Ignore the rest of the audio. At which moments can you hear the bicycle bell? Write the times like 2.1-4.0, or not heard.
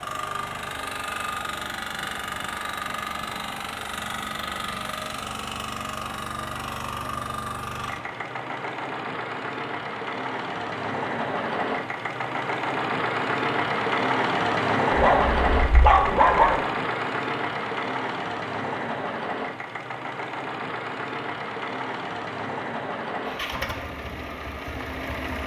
not heard.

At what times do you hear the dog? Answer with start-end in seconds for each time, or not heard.
14.9-16.6.